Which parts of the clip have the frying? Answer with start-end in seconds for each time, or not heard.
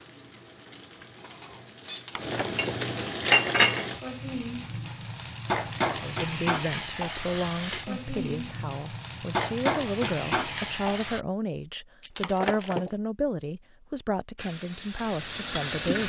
0.0-11.2, 14.3-16.0.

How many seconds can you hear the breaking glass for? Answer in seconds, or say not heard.
2 s.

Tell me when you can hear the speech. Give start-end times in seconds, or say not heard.
6.0-16.0.